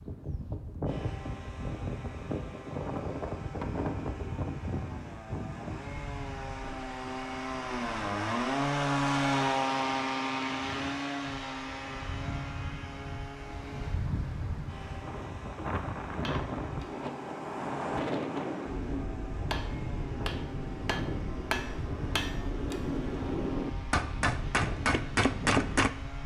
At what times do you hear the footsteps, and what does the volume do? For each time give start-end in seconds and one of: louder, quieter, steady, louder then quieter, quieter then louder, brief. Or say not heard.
not heard.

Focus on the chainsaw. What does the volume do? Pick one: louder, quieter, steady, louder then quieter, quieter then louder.
louder then quieter.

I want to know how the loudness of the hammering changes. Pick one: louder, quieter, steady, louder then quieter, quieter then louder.
louder.